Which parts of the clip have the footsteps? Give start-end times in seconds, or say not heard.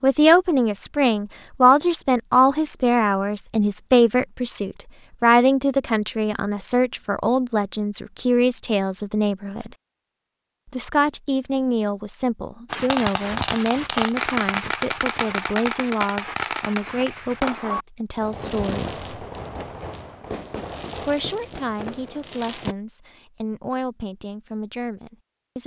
not heard.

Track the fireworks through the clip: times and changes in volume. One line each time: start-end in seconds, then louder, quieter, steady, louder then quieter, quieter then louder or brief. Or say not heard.
12.7-22.8 quieter.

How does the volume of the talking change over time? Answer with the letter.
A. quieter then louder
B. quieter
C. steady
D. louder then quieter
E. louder
B.